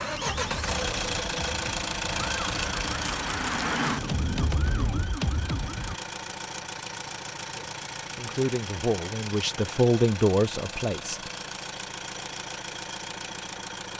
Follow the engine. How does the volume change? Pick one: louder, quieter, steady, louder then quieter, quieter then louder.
quieter.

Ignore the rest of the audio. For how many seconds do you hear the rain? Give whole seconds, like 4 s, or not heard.
not heard.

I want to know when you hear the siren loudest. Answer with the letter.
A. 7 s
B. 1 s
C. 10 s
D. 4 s
D.